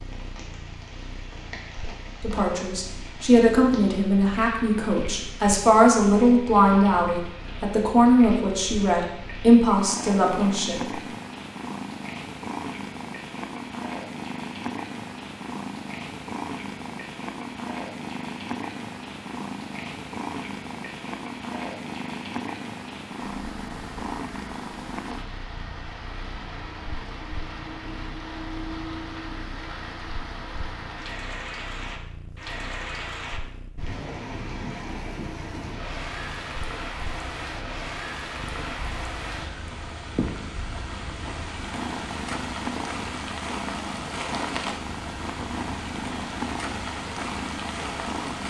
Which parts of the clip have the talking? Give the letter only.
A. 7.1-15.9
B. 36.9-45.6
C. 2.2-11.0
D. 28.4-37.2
C.